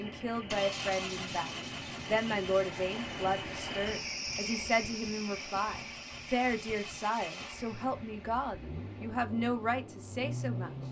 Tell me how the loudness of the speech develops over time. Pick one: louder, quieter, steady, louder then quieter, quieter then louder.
steady.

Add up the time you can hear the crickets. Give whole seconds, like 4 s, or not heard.
8 s.